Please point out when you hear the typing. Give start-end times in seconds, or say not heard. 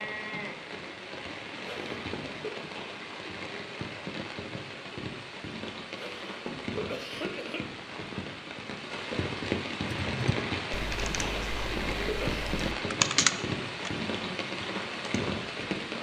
9.8-15.2.